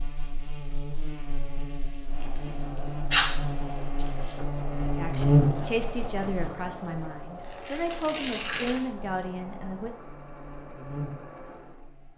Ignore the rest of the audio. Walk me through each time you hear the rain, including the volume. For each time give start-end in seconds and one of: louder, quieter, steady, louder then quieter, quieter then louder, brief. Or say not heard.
not heard.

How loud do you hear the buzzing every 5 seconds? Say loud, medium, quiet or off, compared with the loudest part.
medium, loud, quiet.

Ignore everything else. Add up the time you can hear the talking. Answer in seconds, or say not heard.
5 s.